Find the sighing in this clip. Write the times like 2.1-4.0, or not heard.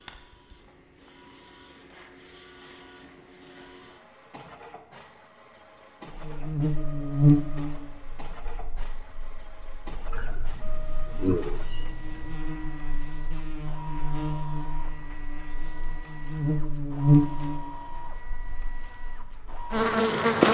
10.1-12.3.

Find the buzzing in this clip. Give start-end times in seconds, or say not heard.
6.1-20.4.